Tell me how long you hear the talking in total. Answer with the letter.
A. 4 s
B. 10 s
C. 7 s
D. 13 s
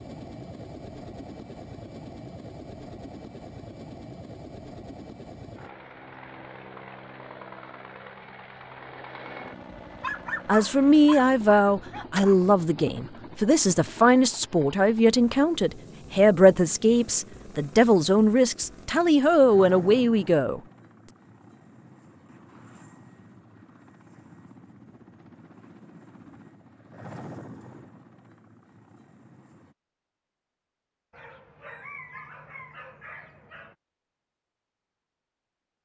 B.